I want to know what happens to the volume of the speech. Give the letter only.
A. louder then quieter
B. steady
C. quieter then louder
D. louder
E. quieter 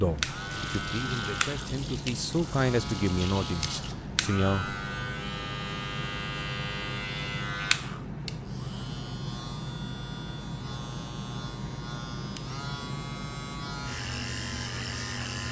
A.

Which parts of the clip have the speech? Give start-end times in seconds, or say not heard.
0.0-4.8.